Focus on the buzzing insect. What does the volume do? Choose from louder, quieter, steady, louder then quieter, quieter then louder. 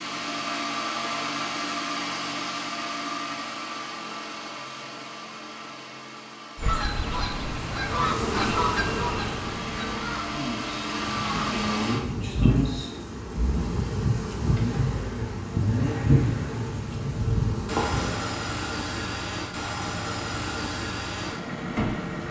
louder.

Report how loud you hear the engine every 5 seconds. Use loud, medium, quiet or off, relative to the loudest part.
loud, medium, loud, loud, loud.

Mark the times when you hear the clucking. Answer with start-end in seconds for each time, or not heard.
6.5-11.6.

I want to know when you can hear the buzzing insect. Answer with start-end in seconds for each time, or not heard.
7.9-18.3.